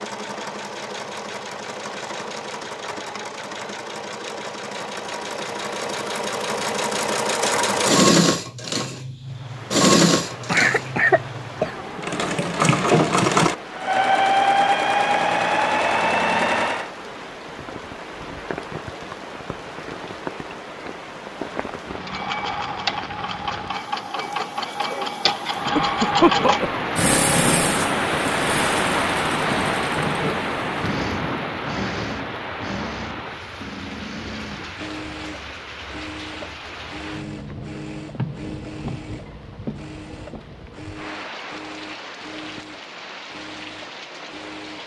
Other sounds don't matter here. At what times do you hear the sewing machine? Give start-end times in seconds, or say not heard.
0.0-16.9, 21.9-44.8.